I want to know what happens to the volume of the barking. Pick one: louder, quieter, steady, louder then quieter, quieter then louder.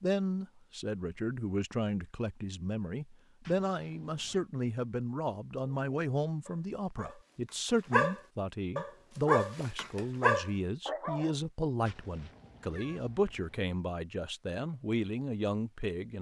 louder.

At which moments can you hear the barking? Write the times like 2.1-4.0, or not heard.
5.6-11.3.